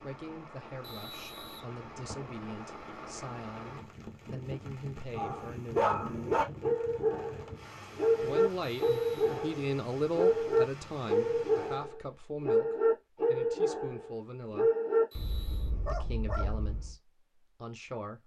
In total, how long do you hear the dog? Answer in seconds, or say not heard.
12 s.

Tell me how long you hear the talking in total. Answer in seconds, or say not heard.
15 s.